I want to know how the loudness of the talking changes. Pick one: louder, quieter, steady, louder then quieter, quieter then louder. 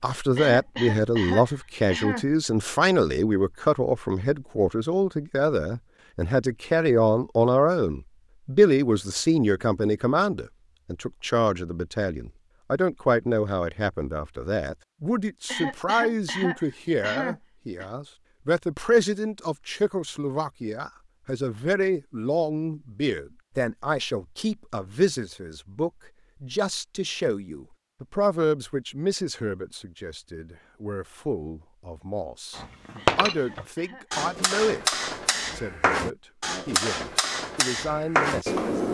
quieter.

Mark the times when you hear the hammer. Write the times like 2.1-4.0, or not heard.
32.5-38.8.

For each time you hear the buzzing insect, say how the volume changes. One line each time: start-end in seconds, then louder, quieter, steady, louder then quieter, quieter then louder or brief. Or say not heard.
not heard.